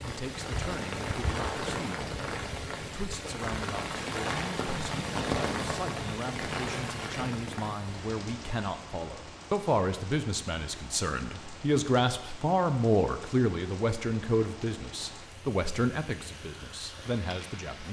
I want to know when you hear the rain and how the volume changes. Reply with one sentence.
You can hear the rain from 0.0 to 17.8 s, getting quieter.